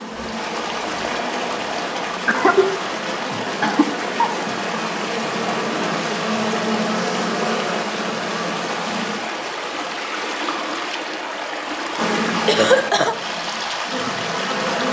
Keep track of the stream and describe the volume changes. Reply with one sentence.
The loudness of the stream stays about the same.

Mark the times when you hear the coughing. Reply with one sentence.
The coughing can be heard from 2.2 to 2.7 s, from 3.3 to 4.5 s and from 12.4 to 13.2 s.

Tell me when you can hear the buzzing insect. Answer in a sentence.
The buzzing insect can be heard from 0.0 to 9.2 s and from 11.9 to 14.8 s.